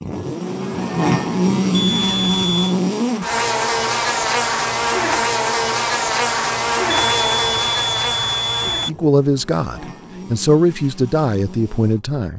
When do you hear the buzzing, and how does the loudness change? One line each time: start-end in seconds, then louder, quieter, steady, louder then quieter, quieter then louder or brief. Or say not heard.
0.0-12.2 quieter.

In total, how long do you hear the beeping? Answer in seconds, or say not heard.
3 s.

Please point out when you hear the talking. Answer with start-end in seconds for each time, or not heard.
8.8-12.3.